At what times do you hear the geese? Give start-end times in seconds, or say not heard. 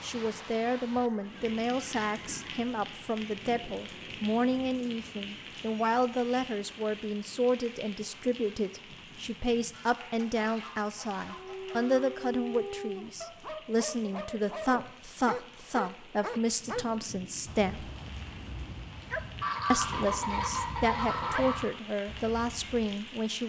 0.9-2.6, 9.7-12.2, 19.4-21.7.